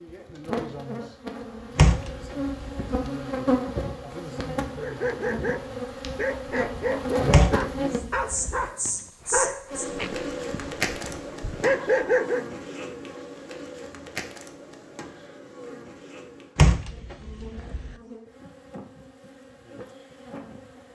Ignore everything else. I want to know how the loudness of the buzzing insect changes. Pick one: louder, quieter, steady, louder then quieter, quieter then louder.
quieter.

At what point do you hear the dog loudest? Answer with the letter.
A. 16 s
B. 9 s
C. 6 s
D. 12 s
D.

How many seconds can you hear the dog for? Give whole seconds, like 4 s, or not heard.
8 s.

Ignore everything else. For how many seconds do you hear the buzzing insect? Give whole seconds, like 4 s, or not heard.
21 s.